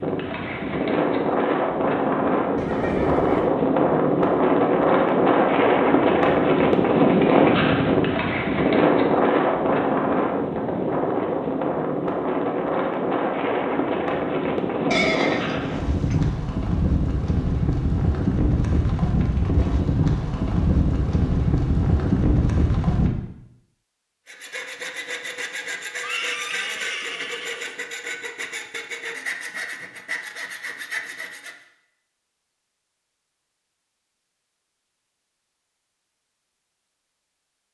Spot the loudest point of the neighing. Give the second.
15 s.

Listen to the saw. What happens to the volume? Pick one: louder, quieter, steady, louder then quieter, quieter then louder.
steady.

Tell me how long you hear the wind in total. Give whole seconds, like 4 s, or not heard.
23 s.